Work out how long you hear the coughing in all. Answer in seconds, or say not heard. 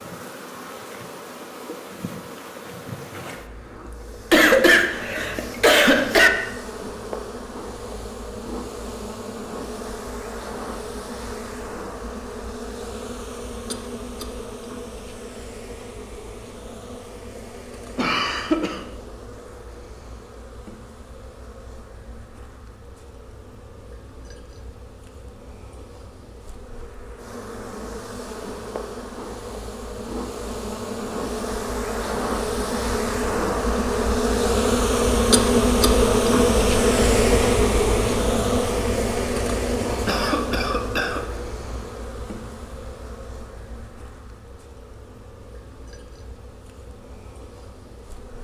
4 s.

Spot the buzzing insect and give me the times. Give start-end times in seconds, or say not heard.
0.0-48.3.